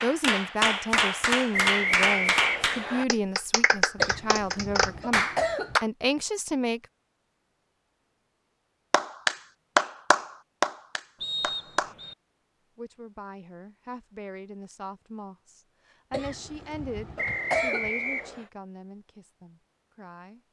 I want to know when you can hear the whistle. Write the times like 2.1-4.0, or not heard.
1.5-3.0, 11.2-12.2, 17.1-18.4.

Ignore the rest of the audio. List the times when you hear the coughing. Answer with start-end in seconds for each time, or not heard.
4.0-5.8, 16.1-17.9.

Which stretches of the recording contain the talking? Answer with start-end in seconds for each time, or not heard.
0.0-6.8, 12.8-20.4.